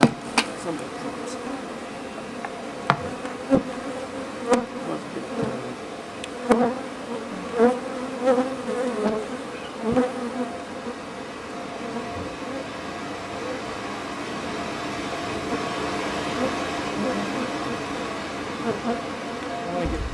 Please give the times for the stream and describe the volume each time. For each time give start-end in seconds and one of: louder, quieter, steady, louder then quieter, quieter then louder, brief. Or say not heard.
0.0-20.0 louder.